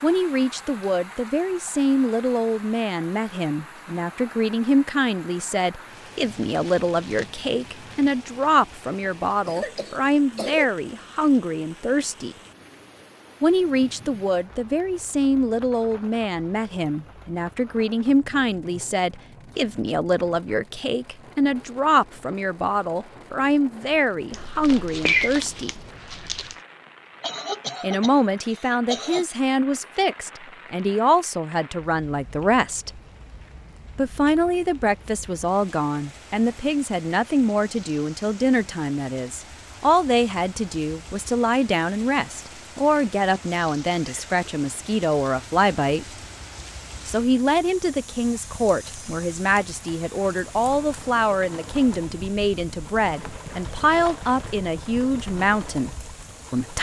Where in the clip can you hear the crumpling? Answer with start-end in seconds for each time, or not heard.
6.2-8.2, 24.3-26.6, 53.0-54.7.